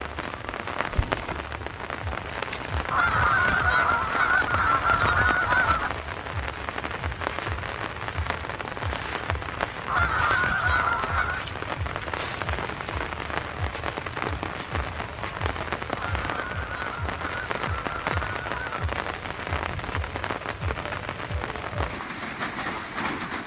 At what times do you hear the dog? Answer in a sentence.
The dog can't be heard in this clip.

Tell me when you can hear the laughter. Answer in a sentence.
You can't hear the laughter here.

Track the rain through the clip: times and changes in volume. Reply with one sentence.
The rain can be heard from 0.0 to 23.4 s, at a steady volume.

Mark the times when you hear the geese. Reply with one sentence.
You can hear the geese from 2.9 to 5.9 s, from 9.8 to 11.4 s and from 15.9 to 18.9 s.